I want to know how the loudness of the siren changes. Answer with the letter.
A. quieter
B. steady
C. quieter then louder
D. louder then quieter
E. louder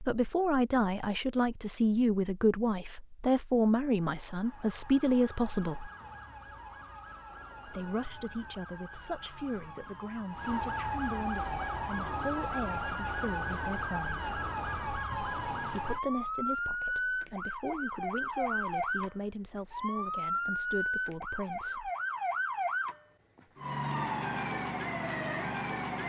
E.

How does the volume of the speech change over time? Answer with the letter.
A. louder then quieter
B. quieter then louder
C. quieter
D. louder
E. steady
C.